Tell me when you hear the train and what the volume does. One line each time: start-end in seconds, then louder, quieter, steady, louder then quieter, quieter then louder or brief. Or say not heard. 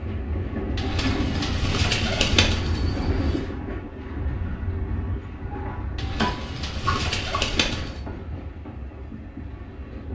0.0-10.1 quieter.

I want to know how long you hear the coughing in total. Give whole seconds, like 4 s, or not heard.
2 s.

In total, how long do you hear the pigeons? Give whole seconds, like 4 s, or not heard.
5 s.